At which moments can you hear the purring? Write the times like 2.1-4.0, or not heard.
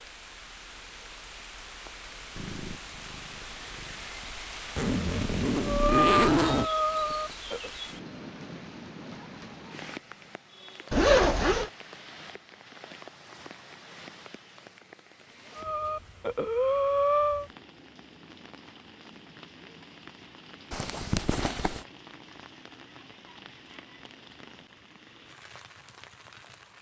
2.4-4.1.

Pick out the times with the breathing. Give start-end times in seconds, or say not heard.
5.6-7.7, 15.6-17.4.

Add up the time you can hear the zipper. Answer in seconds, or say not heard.
4 s.